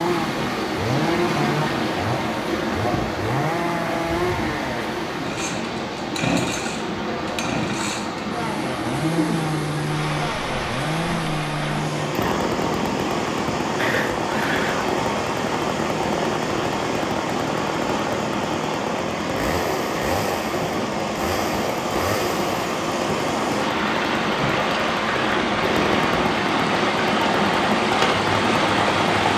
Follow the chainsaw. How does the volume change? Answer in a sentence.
The loudness of the chainsaw stays about the same.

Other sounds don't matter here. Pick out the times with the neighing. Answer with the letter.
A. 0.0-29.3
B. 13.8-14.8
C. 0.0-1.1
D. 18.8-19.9
B.